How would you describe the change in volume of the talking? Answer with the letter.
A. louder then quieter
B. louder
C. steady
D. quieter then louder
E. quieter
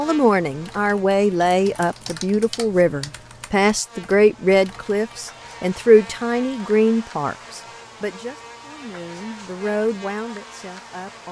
E.